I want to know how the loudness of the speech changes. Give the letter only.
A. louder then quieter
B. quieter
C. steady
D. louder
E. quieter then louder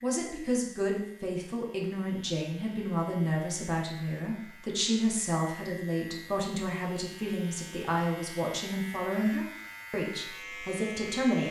C.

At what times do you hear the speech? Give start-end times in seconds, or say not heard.
0.0-11.4.